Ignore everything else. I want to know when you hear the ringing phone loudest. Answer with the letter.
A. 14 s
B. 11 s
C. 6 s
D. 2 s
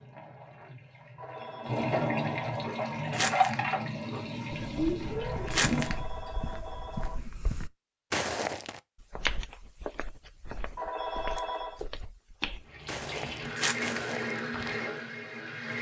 B.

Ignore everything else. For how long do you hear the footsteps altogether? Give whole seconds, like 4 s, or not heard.
10 s.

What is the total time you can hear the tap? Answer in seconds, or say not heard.
9 s.